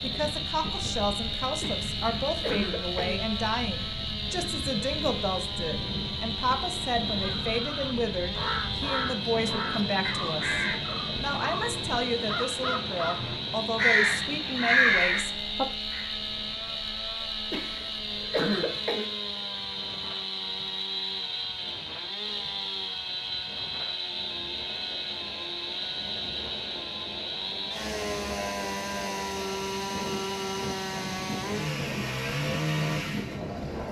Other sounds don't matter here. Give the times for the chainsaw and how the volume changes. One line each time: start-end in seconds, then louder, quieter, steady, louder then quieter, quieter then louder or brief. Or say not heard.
0.0-33.8 steady.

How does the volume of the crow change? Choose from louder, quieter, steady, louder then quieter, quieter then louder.
louder.